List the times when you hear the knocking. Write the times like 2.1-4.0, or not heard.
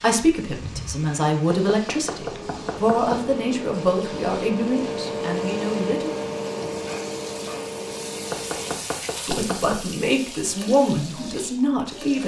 1.4-3.2, 8.3-9.8.